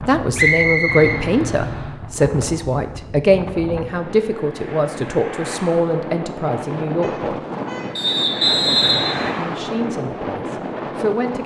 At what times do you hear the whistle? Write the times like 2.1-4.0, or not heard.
0.3-1.2, 8.0-9.3.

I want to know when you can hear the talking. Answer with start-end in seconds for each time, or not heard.
0.1-7.3, 9.3-11.4.